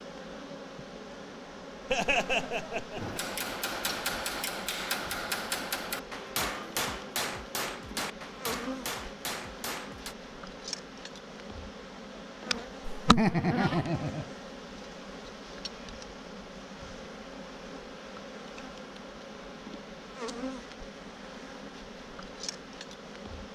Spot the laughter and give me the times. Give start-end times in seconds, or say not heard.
1.9-3.2, 12.8-14.3.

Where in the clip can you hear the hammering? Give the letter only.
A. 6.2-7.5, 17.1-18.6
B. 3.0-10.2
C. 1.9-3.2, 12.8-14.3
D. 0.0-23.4
B.